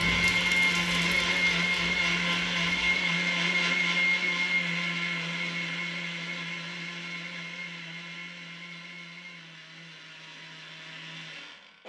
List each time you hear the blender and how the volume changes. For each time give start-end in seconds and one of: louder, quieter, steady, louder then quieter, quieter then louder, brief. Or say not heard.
0.0-11.8 quieter.